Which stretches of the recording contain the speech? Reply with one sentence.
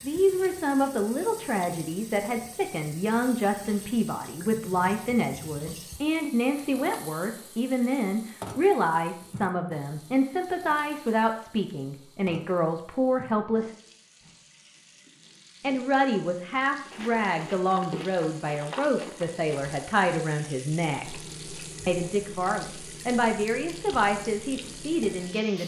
The speech can be heard from 0.0 to 13.7 s, from 15.6 to 21.1 s and from 21.9 to 25.6 s.